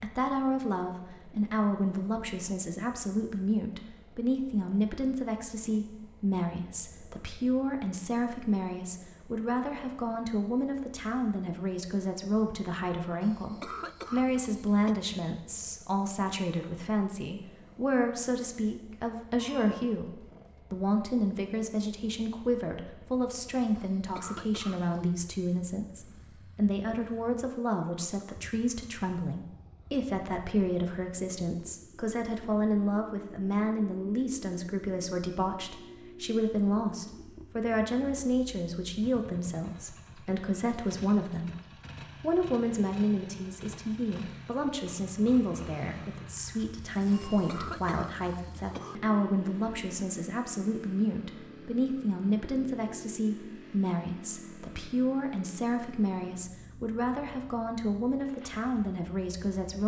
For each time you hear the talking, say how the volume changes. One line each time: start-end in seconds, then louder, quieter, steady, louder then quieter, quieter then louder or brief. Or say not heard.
0.0-59.8 steady.